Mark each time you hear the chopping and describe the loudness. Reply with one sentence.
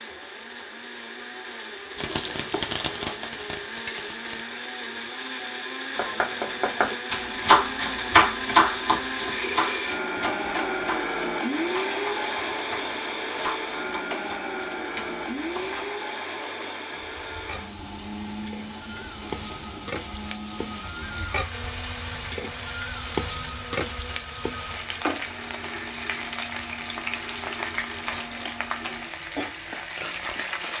You can hear the chopping from 6.0 to 15.8 s, getting quieter.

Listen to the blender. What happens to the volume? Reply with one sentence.
The loudness of the blender goes up, then down.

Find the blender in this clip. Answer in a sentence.
You can hear the blender from 0.0 to 30.7 s.